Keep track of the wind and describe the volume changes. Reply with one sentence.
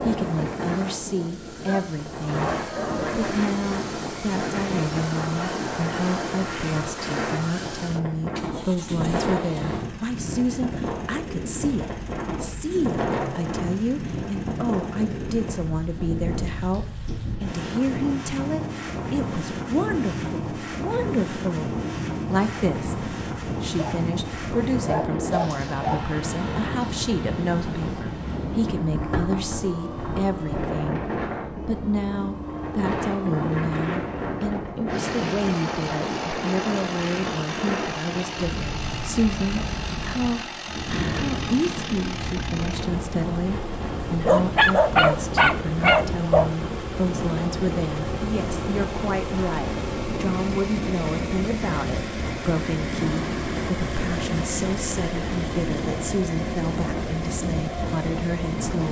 The volume of the wind stays about the same.